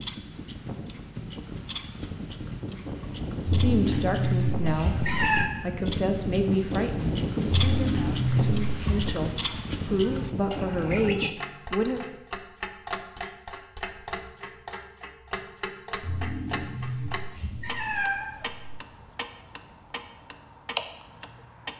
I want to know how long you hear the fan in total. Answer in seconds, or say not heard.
11 s.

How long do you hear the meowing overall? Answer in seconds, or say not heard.
6 s.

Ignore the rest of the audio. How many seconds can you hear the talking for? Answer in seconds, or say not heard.
9 s.